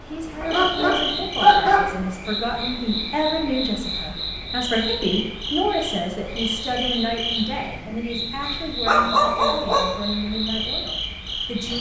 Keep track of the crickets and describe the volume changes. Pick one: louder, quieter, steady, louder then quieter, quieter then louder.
steady.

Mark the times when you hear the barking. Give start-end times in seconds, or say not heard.
0.4-1.9, 8.8-9.8.